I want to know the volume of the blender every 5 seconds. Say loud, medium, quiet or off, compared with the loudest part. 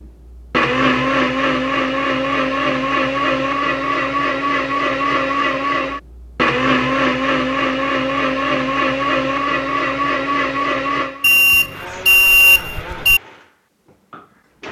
loud, loud, medium.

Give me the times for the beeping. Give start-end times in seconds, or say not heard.
11.2-13.2.